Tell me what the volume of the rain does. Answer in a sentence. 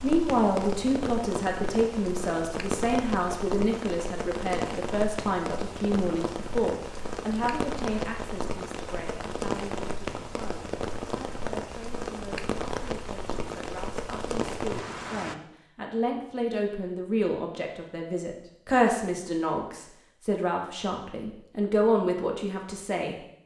The volume of the rain stays about the same.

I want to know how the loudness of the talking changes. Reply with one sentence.
The volume of the talking goes down, then up.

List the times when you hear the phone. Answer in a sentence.
The phone can't be heard in this clip.